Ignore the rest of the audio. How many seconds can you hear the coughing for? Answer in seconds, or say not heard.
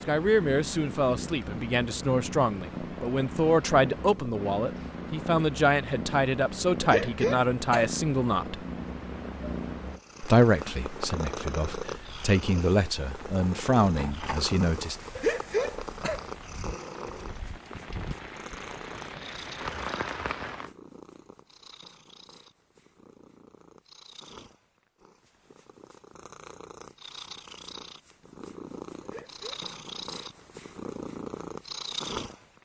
3 s.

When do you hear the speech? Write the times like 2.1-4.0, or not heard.
0.1-8.7, 10.2-14.9.